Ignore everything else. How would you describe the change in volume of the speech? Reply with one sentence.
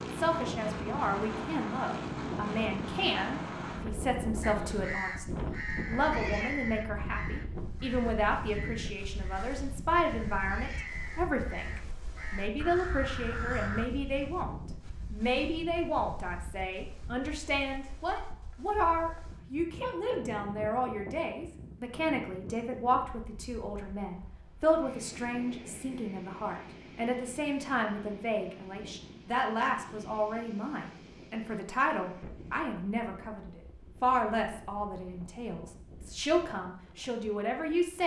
The volume of the speech stays about the same.